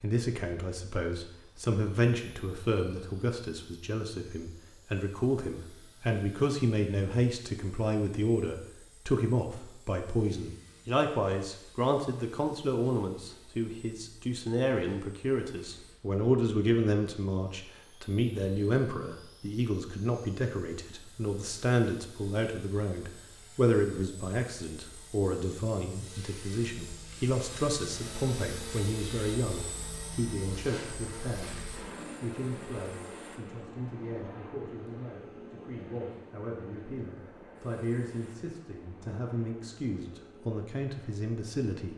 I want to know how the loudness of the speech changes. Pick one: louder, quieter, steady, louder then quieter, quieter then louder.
quieter.